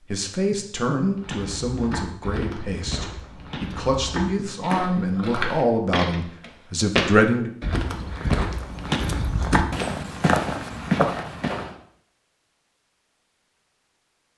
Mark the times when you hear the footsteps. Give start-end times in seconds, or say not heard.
1.1-11.7.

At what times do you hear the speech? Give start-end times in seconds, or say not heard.
0.1-7.5.